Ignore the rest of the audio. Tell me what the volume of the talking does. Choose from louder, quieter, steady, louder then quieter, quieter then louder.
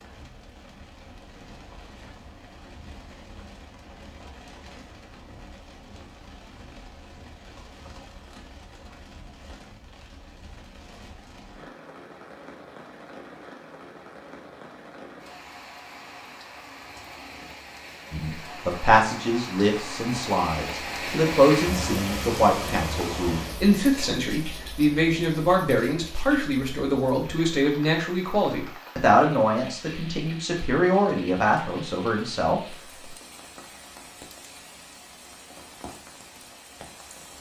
steady.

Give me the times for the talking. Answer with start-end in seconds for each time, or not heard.
18.1-32.6.